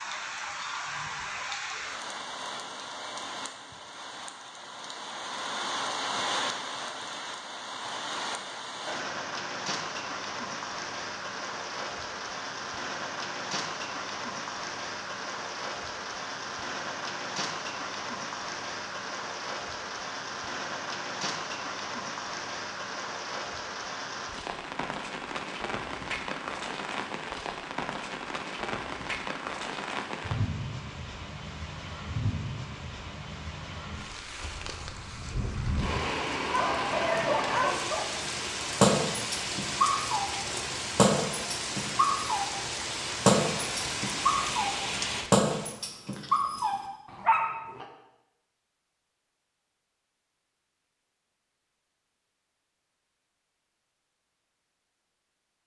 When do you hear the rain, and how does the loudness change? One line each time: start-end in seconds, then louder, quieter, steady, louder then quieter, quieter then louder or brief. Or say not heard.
0.0-45.8 steady.